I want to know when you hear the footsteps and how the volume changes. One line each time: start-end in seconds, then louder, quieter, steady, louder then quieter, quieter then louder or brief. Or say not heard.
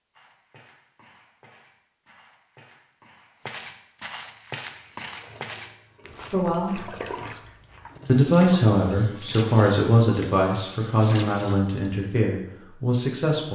0.1-8.0 louder then quieter.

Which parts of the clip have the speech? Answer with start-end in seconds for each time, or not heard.
6.3-6.8, 8.1-13.4.